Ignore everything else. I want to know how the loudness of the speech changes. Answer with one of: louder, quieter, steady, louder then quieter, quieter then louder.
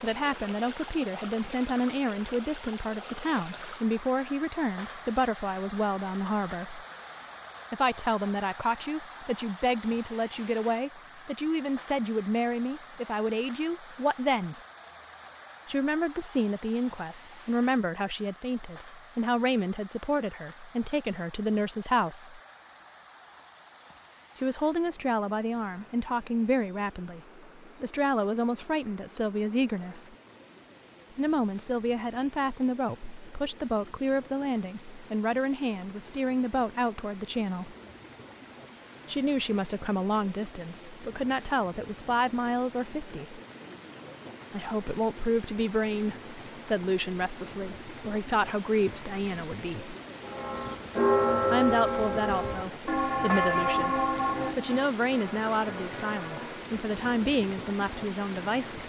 steady.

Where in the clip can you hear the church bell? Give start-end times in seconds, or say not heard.
50.2-56.7.